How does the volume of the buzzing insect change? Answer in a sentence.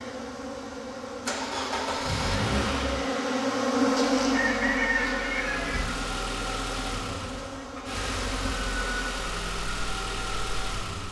The volume of the buzzing insect goes up, then down.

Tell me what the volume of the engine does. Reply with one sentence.
The loudness of the engine stays about the same.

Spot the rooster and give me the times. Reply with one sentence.
You can hear the rooster from 4.3 to 5.8 s.